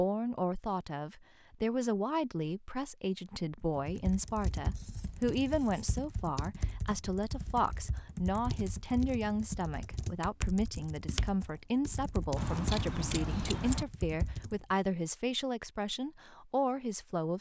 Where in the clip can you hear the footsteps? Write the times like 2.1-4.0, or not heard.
not heard.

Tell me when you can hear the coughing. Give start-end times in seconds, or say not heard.
not heard.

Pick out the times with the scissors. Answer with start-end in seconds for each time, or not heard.
4.8-5.8, 12.3-13.8.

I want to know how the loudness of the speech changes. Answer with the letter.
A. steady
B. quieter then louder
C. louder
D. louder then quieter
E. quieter
A.